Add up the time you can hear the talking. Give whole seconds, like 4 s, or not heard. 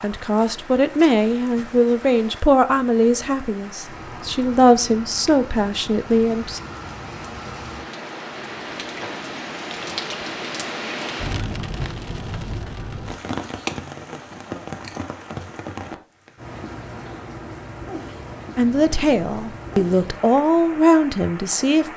10 s.